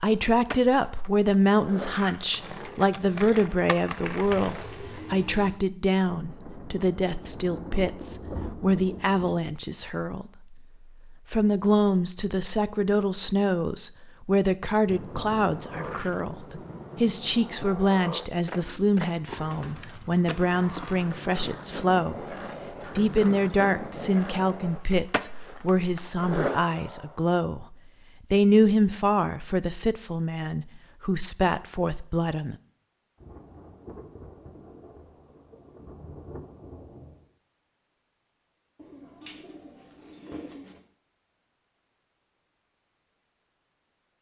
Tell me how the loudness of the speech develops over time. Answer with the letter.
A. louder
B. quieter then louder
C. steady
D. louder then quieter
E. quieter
C.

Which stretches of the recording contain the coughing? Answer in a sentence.
The coughing can't be heard in this clip.